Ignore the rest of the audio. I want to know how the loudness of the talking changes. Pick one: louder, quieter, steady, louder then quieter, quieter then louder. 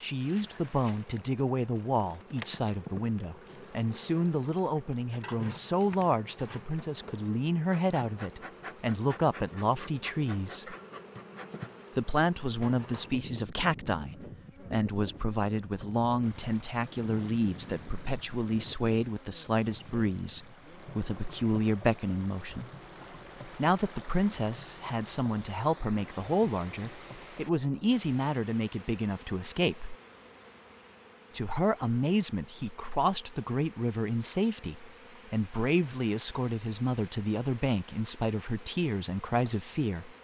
steady.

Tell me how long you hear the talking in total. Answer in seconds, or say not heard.
37 s.